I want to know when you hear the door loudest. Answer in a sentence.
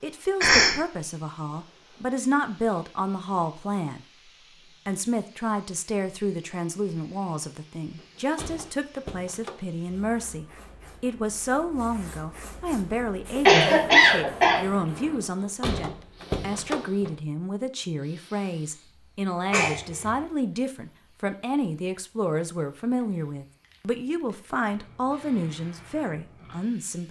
The loudest moment of the door is at 16 seconds.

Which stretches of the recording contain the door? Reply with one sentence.
The door can be heard from 8.0 to 9.7 s and from 15.2 to 17.2 s.